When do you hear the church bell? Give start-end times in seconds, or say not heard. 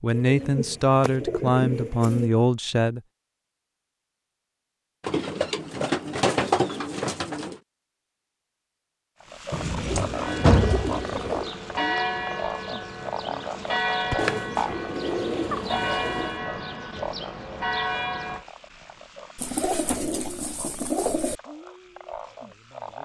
10.2-18.4.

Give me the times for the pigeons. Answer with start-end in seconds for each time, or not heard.
0.1-2.3, 5.0-7.6, 9.5-11.5, 14.2-16.4, 19.4-21.4.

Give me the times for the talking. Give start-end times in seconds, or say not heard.
0.0-3.0.